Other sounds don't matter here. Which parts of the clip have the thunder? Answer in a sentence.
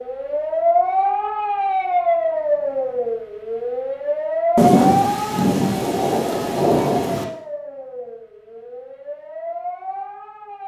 The thunder can be heard from 4.5 to 7.2 s.